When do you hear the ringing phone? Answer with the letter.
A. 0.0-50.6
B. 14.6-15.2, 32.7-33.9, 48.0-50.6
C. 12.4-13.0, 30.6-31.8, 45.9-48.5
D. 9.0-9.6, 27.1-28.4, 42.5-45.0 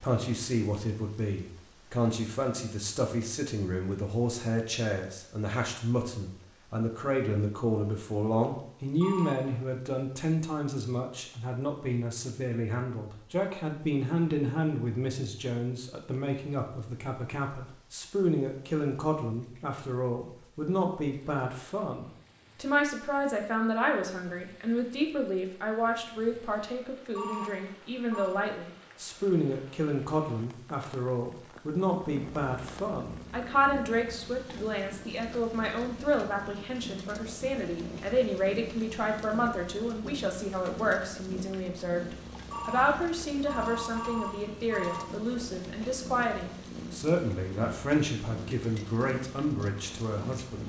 D.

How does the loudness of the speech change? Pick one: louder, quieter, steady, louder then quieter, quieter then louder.
steady.